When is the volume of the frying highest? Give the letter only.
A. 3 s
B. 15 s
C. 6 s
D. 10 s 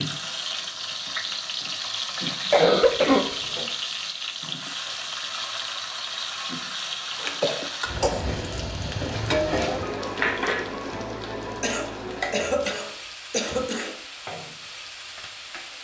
D.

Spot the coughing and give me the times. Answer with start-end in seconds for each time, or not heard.
2.5-3.7, 7.2-8.2, 11.6-13.9.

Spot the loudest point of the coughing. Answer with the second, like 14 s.
3 s.